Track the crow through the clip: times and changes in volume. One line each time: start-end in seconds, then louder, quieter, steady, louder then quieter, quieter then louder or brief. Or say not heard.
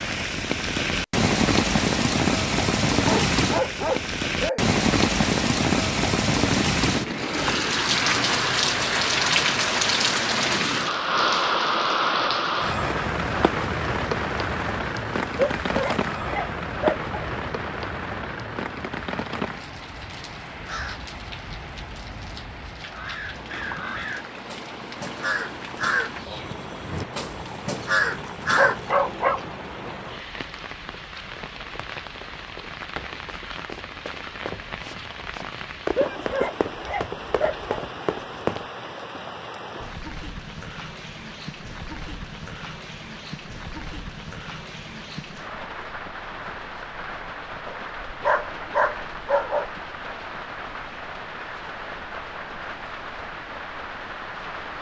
20.5-28.9 louder.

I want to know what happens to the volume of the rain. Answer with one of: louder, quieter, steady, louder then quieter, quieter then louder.
quieter.